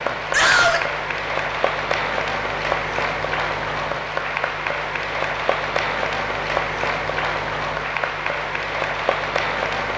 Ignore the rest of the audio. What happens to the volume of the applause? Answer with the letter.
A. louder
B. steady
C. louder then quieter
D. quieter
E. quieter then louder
B.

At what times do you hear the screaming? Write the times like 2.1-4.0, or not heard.
0.3-0.8.